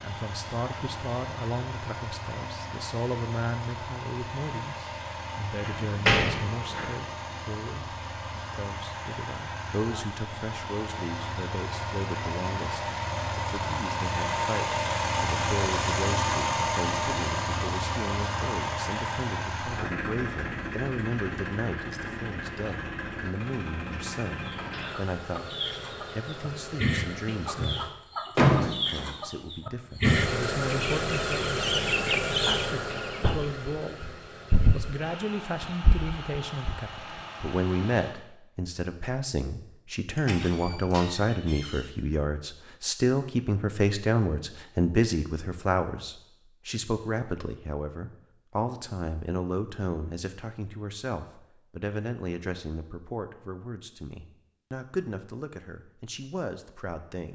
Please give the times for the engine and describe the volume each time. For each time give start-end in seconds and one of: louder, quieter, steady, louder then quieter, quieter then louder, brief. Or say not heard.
0.0-27.9 louder then quieter
30.0-38.1 quieter.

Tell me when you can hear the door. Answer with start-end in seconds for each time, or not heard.
5.7-6.8, 28.4-29.1, 40.1-41.8.